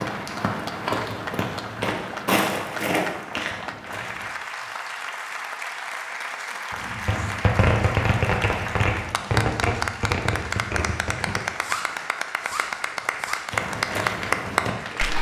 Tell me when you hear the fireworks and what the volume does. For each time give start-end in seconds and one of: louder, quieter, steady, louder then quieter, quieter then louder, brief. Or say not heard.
6.7-13.5 quieter.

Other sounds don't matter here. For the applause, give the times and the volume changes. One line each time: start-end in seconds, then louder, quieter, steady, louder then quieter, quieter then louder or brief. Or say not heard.
0.0-15.1 louder.